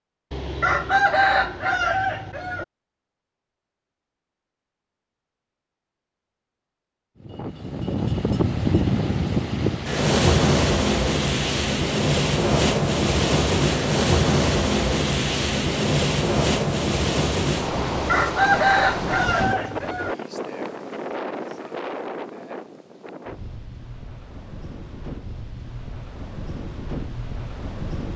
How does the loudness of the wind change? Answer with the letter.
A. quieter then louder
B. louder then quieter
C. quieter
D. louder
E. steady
C.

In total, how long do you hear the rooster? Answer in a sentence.
The rooster can be heard for 5 seconds in total.